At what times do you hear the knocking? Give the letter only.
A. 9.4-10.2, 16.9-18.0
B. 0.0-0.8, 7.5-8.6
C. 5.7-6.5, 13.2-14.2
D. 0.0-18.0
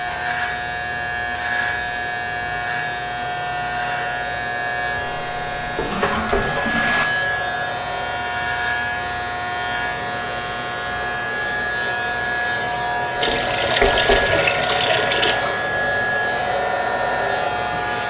C.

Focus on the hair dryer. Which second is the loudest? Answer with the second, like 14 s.
17 s.